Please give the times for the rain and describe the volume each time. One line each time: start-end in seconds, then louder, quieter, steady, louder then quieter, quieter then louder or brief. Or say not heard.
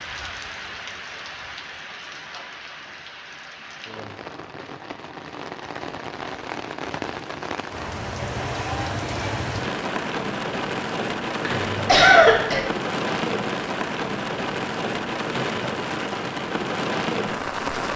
0.0-17.9 louder.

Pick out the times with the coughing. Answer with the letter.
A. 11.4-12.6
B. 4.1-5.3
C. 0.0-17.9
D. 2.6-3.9
A.